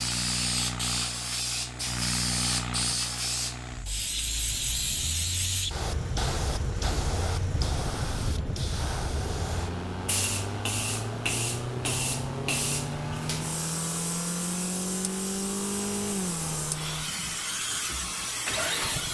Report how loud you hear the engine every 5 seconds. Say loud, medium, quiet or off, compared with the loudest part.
loud, medium, loud, loud.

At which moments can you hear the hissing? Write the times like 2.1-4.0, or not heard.
0.0-19.0.